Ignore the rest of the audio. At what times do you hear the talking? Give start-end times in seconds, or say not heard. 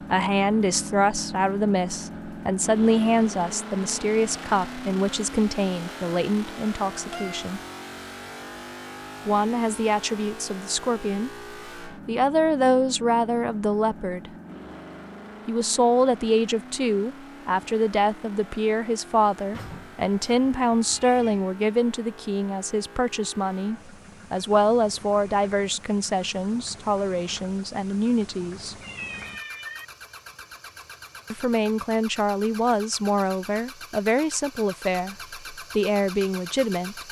0.1-7.6, 9.2-14.3, 15.4-28.8, 31.3-37.0.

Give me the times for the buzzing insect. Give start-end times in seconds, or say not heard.
not heard.